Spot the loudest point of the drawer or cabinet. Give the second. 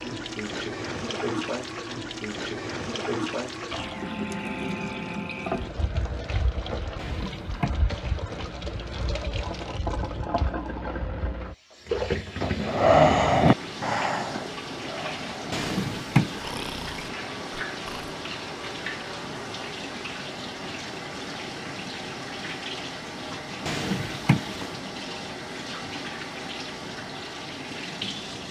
16 s.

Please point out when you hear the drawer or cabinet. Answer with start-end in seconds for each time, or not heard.
7.0-7.8, 15.5-16.5, 23.6-24.8.